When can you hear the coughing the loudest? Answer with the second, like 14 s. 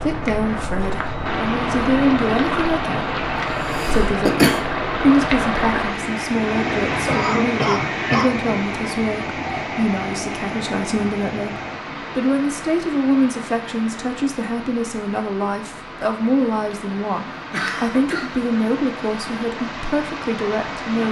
4 s.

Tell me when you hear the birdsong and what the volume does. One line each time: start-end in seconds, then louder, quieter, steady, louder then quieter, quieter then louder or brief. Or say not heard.
not heard.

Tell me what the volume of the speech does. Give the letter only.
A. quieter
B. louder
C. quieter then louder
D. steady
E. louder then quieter
D.